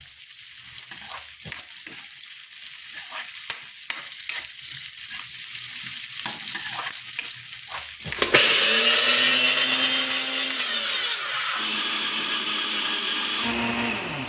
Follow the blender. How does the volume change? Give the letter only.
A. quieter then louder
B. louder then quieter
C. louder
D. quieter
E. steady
D.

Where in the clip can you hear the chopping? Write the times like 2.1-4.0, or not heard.
not heard.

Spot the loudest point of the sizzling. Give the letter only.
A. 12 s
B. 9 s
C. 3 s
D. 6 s
D.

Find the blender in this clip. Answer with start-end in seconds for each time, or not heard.
8.1-14.2.